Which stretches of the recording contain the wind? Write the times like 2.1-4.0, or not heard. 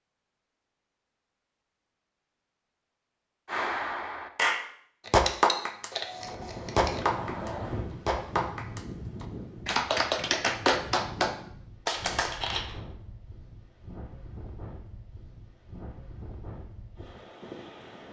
6.1-18.0.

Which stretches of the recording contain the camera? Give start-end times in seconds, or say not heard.
5.0-7.0, 11.8-12.8.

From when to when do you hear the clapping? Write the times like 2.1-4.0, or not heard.
3.5-12.4.